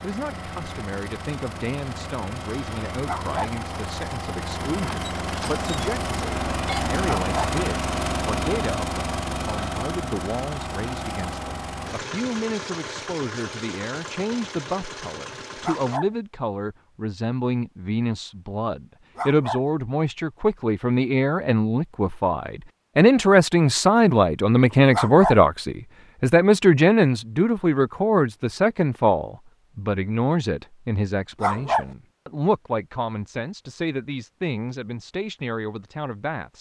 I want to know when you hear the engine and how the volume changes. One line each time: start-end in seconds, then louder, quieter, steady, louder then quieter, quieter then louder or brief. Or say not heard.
0.0-16.0 louder then quieter.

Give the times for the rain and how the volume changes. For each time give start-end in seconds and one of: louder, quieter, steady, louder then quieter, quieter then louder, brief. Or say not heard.
not heard.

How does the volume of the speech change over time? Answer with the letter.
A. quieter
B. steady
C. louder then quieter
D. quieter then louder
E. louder
C.